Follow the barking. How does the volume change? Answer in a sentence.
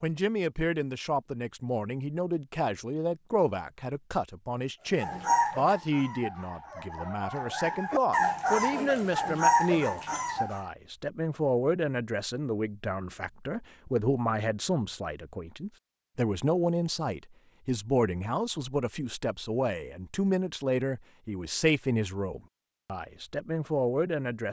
The loudness of the barking goes down, then up.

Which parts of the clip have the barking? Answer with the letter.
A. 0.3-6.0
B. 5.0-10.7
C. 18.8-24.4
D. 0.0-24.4
B.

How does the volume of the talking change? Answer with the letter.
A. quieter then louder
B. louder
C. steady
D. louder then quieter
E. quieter
C.